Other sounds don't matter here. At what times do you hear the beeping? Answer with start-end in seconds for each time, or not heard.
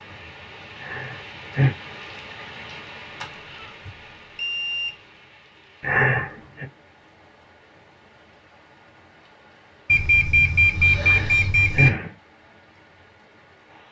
3.2-5.0, 9.8-11.9.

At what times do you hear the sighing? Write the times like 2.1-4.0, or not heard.
0.8-1.8, 5.8-6.7, 11.0-12.1.